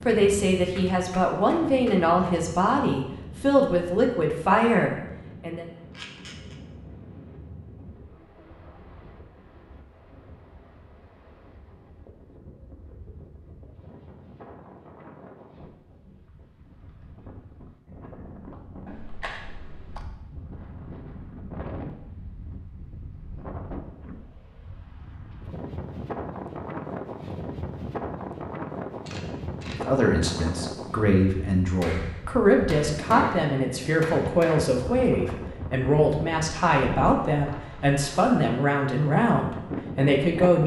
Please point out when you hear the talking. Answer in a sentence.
You can hear the talking from 0.1 to 5.7 s and from 29.7 to 40.6 s.